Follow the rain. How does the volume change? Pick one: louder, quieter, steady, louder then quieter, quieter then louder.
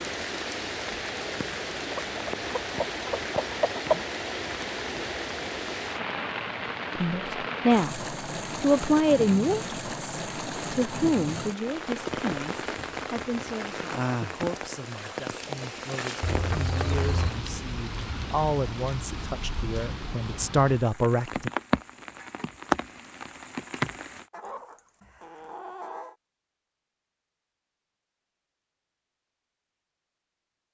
steady.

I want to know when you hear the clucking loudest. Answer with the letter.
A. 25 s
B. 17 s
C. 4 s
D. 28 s
C.